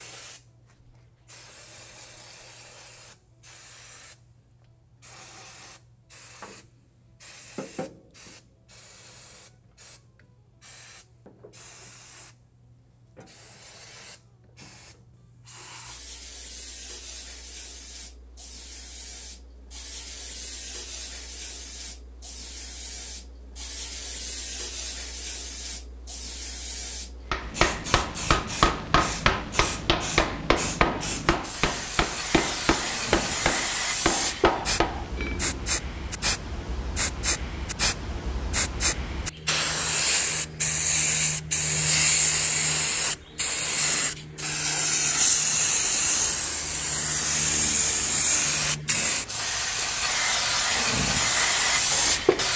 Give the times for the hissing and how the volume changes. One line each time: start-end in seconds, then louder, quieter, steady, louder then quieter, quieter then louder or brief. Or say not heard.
0.0-52.5 louder.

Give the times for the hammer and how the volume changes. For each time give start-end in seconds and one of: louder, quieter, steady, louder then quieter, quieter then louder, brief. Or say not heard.
27.3-35.6 steady.